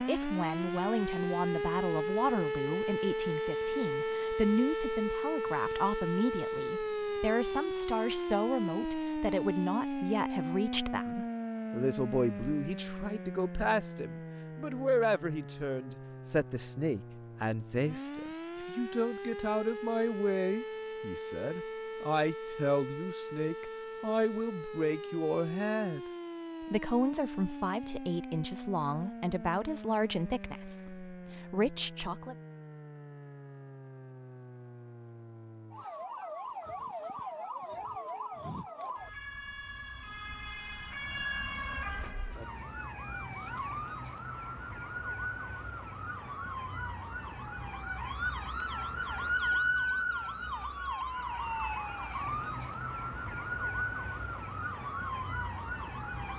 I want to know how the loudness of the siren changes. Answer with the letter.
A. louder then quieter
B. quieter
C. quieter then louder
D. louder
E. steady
C.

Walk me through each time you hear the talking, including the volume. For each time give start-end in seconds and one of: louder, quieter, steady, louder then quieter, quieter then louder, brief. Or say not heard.
0.1-26.0 steady
26.6-32.4 steady.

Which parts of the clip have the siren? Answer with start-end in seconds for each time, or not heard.
0.0-56.3.